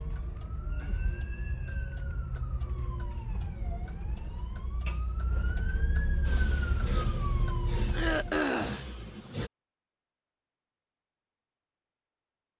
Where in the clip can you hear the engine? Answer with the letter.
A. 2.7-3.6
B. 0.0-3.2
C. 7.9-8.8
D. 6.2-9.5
D.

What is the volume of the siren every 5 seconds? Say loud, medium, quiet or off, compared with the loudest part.
medium, loud, off.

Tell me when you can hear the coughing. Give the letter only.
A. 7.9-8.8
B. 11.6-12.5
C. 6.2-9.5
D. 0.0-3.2
A.